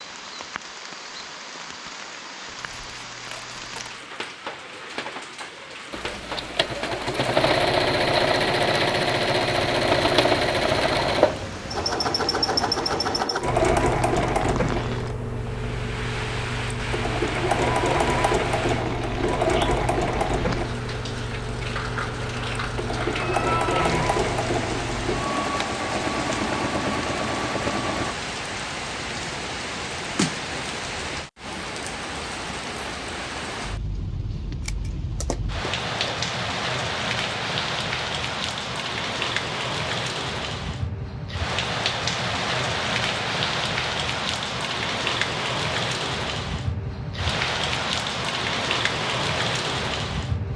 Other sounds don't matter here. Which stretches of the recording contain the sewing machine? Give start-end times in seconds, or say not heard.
5.9-28.1.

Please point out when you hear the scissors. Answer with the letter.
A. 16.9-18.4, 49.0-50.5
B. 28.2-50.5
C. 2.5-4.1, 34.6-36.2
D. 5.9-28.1
C.